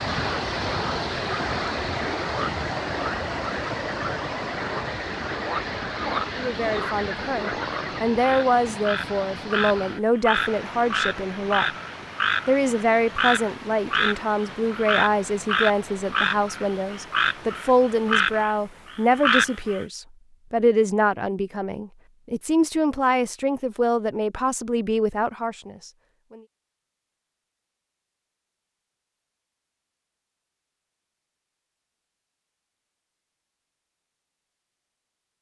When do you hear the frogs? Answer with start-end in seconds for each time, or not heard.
0.0-19.9.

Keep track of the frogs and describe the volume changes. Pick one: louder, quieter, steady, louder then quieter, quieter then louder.
louder.